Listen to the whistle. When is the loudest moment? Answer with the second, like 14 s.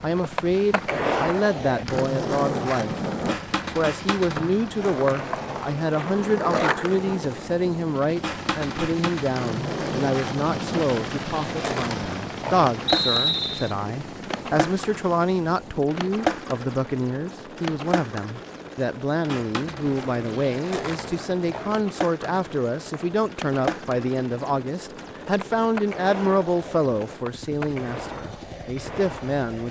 13 s.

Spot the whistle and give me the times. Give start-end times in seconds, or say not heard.
4.3-5.8, 12.8-13.8, 22.2-23.1.